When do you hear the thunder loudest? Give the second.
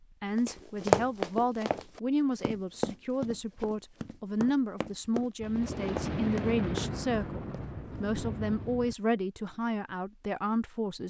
6 s.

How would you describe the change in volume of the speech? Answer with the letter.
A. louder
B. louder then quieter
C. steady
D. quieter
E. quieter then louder
C.